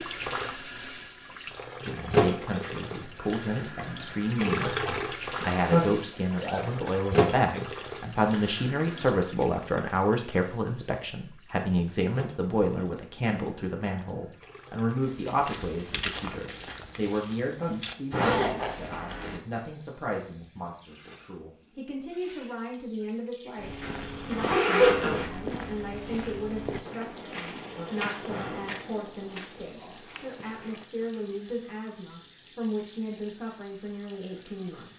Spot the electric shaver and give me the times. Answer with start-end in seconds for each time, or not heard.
not heard.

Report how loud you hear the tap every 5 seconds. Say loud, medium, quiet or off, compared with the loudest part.
loud, loud, quiet, quiet, quiet, quiet, quiet.